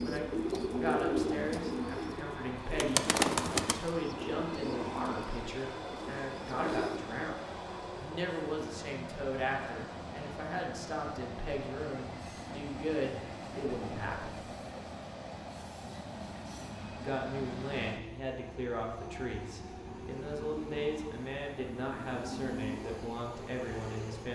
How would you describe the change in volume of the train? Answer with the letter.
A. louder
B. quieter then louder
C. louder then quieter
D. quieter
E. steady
E.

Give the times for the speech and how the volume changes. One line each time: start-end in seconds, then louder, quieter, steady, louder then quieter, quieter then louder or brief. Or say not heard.
0.0-14.4 steady
16.9-24.3 steady.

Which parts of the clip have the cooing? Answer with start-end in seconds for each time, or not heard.
0.0-7.0.